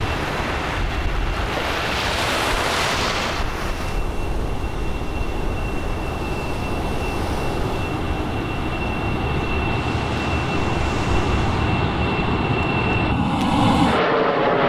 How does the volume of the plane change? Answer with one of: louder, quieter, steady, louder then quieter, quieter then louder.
louder.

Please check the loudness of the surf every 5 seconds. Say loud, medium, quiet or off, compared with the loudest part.
loud, medium, medium.